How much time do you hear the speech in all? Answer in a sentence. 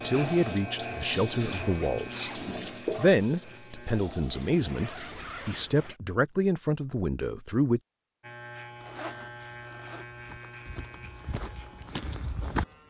The speech can be heard for 8 seconds in total.